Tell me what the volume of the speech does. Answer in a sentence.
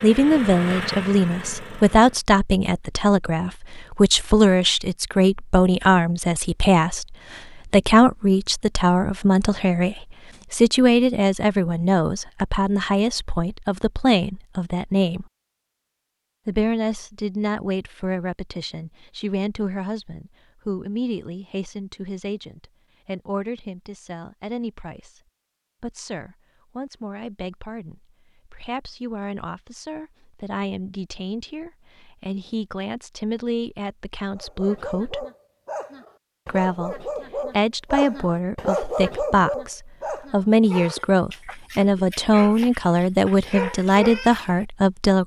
The volume of the speech goes down, then up.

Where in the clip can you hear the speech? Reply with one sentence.
The speech can be heard from 0.0 to 15.2 s, from 16.4 to 25.2 s, from 25.8 to 35.2 s and from 36.5 to 45.2 s.